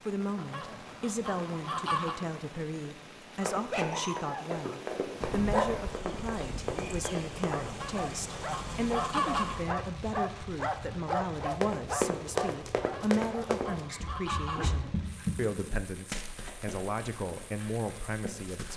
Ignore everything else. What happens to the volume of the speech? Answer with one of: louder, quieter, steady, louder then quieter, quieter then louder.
steady.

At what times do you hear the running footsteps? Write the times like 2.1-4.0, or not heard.
3.5-7.7, 11.3-18.7.